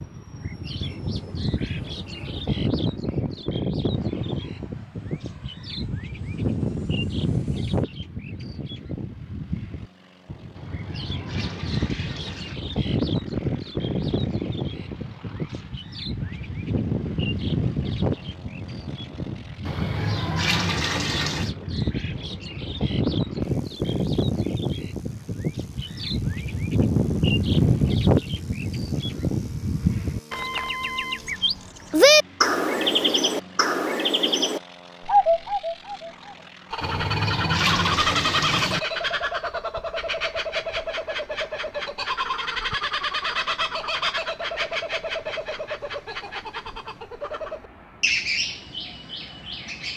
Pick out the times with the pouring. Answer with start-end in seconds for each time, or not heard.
10.6-12.6, 19.6-21.5, 36.8-38.8.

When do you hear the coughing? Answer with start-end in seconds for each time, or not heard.
not heard.